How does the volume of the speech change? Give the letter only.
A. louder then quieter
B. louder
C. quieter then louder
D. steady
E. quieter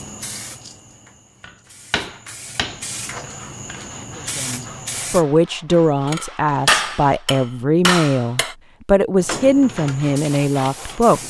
D.